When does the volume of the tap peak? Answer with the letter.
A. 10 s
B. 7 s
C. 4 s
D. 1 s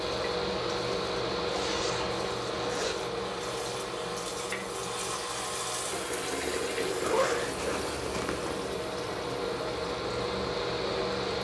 B.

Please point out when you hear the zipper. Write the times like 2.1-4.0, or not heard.
1.5-3.0, 7.0-8.6.